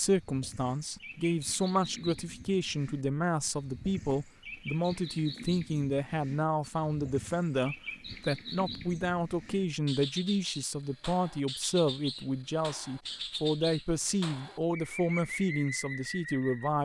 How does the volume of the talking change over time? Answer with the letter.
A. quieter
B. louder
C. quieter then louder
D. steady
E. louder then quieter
D.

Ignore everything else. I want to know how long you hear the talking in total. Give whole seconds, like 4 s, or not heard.
17 s.